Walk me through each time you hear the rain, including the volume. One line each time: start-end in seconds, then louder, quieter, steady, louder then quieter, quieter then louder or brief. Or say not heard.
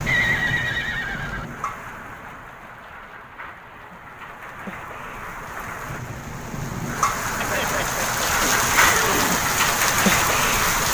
0.0-10.9 quieter then louder.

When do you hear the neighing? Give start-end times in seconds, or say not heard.
0.1-1.4, 7.4-9.4.